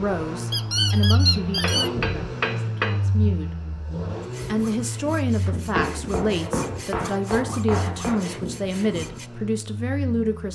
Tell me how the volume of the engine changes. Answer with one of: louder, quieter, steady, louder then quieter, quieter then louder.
quieter.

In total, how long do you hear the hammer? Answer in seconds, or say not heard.
4 s.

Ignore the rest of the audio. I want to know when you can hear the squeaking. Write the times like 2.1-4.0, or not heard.
0.5-1.9.